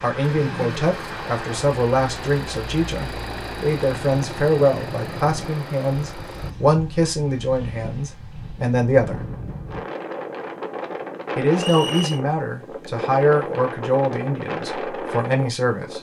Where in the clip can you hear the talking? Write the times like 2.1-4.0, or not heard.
0.0-9.2, 11.3-15.9.